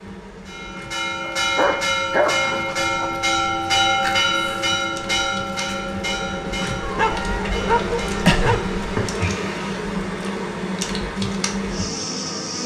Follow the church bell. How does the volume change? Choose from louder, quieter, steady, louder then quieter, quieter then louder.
quieter.